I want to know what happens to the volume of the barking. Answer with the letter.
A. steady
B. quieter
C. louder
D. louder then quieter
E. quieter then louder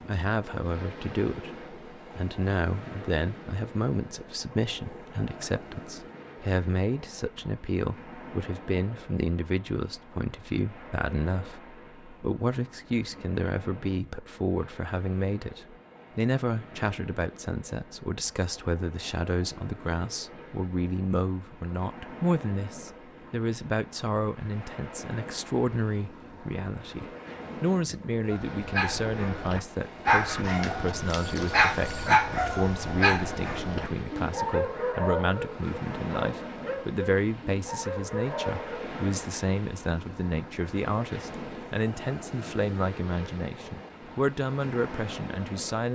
B.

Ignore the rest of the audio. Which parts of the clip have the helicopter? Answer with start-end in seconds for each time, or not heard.
not heard.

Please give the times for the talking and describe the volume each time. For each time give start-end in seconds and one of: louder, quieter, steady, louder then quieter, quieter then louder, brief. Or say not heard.
0.1-45.8 steady.